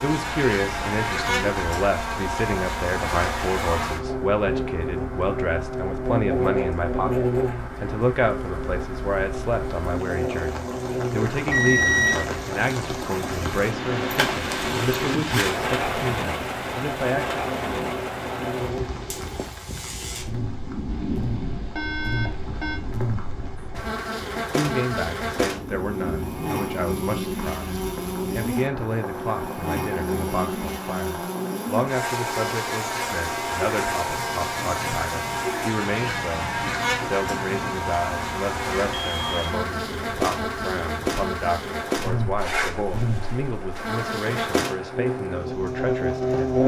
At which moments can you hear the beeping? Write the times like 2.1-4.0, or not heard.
11.5-12.2, 20.9-22.8, 38.9-39.5.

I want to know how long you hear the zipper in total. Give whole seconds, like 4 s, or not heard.
3 s.